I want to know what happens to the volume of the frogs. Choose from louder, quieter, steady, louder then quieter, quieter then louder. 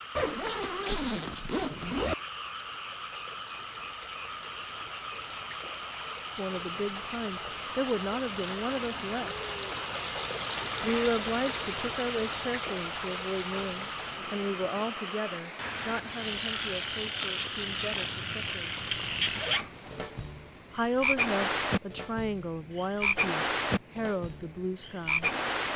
louder.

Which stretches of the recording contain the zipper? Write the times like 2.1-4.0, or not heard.
0.1-2.1, 10.8-11.2, 19.2-20.1.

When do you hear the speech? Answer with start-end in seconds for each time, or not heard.
6.3-9.3, 10.8-18.8, 20.7-25.4.